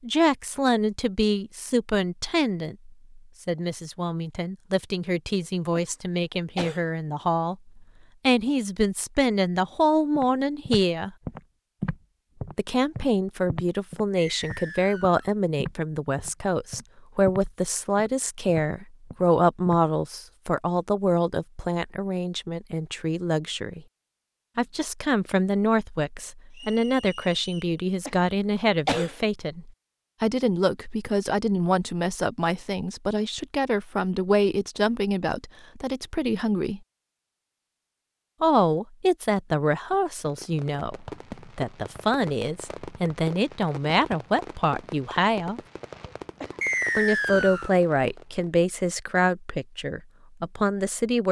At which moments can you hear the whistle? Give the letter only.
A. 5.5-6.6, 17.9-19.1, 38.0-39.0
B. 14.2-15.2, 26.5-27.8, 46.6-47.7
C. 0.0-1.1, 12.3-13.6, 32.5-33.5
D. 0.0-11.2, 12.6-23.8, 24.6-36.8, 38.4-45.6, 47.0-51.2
B.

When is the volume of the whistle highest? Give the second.
47 s.